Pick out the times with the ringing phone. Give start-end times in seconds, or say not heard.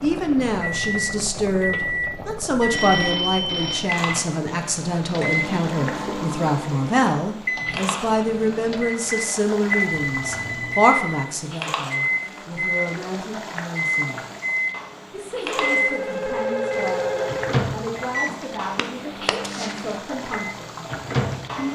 2.7-3.9, 9.7-11.2, 15.4-17.6.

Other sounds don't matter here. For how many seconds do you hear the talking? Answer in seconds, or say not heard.
20 s.